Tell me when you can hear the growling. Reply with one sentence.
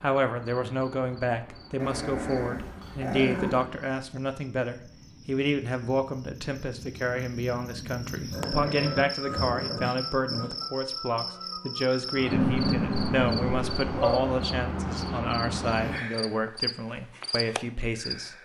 The growling can be heard from 1.8 to 3.6 s, from 8.3 to 10.6 s and from 12.3 to 14.2 s.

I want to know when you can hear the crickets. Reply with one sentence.
The crickets can be heard from 0.0 to 18.4 s.